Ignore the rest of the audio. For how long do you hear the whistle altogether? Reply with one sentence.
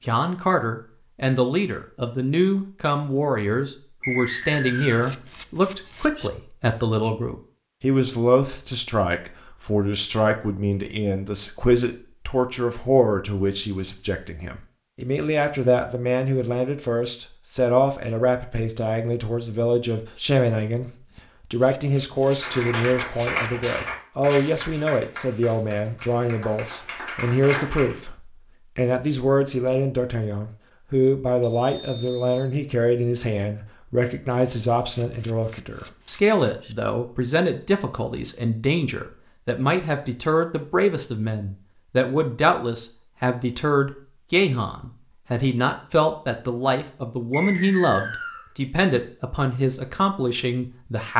The whistle can be heard for 3 seconds in total.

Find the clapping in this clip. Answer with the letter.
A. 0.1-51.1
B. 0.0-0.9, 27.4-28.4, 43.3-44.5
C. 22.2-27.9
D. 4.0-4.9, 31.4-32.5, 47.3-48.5
C.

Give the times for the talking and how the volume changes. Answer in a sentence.
You can hear the talking from 0.1 to 51.1 s, at a steady volume.